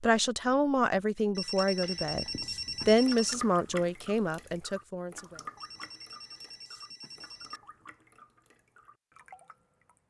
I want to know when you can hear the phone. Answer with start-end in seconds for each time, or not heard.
1.4-3.4, 5.5-7.6.